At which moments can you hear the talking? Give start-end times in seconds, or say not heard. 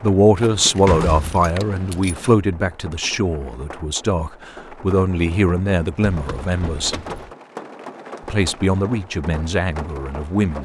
0.0-7.0, 8.2-10.5.